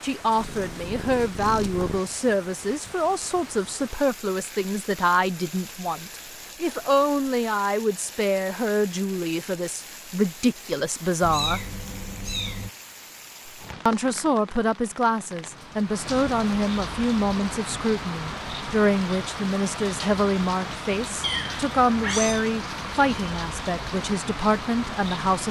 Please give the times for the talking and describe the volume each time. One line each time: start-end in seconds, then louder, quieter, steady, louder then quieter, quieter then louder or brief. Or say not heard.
0.0-11.7 steady
13.8-25.4 steady.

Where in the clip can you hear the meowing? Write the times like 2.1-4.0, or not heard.
0.3-2.0, 11.2-12.7, 21.2-22.4.